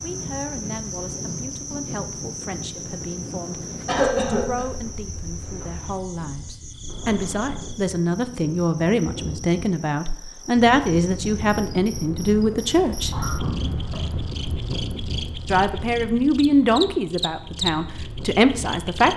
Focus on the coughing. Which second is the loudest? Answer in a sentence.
The volume of the coughing peaks at 4 seconds.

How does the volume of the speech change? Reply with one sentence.
The volume of the speech goes up.